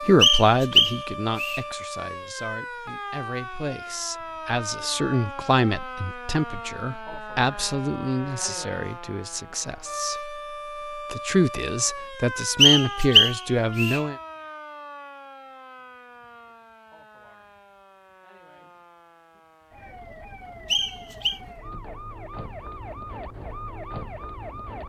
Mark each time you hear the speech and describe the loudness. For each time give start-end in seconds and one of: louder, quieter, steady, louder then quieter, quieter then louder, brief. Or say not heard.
0.1-14.2 quieter then louder.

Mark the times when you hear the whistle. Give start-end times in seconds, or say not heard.
0.2-1.6, 12.6-14.0, 20.7-21.4.